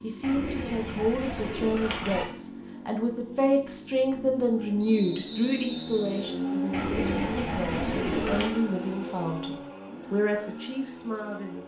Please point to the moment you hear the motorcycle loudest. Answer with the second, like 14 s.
7 s.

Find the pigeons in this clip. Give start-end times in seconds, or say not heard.
0.2-2.2, 6.7-8.6.